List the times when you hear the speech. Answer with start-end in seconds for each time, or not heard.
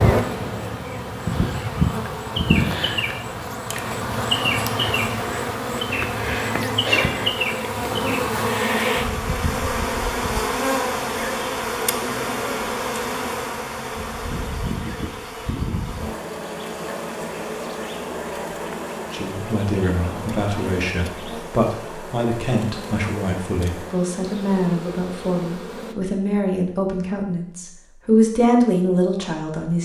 19.1-29.8.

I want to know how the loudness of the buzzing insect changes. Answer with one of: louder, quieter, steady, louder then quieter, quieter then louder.
quieter.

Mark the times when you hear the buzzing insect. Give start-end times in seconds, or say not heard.
0.0-25.9.